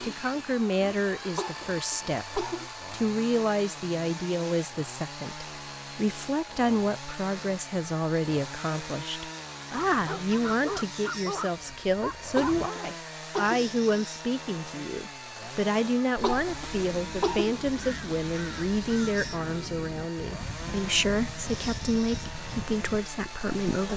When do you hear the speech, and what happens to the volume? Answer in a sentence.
You can hear the speech from 0.0 to 23.9 s, at a steady volume.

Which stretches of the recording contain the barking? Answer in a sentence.
You can hear the barking from 9.8 to 12.7 s.